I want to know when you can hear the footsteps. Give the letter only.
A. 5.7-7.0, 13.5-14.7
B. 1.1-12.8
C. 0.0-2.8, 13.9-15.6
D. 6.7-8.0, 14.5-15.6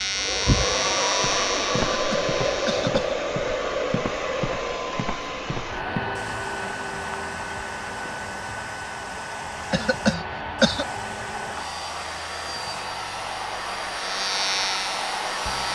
B.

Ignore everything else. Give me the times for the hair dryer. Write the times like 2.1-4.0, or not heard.
0.0-15.6.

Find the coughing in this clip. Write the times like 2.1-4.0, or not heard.
1.9-3.1, 9.7-10.8.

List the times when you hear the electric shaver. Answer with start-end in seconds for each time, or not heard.
0.0-2.8, 13.9-15.6.